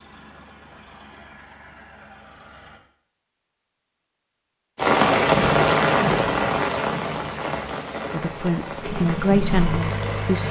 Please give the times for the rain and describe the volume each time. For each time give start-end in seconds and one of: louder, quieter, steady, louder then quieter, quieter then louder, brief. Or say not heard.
4.8-10.4 quieter.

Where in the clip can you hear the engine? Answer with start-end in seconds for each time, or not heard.
0.0-2.8, 8.8-10.4.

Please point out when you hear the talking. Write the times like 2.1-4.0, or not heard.
8.1-10.4.